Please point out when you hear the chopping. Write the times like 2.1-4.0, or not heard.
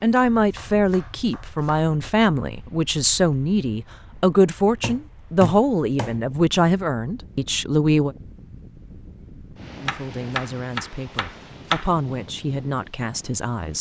0.3-1.9, 4.8-6.7, 9.8-11.8.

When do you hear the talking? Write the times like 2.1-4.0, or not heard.
0.0-8.2, 9.8-13.7.